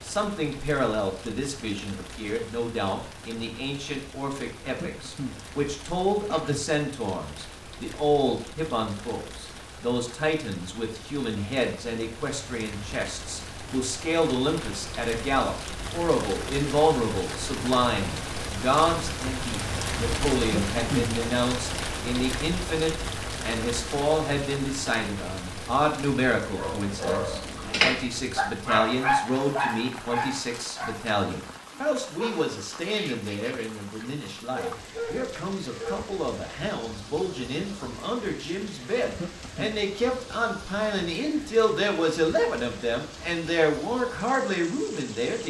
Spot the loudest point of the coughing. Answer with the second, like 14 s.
21 s.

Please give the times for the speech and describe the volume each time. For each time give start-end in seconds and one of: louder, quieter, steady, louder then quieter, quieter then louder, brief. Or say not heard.
0.0-45.4 steady.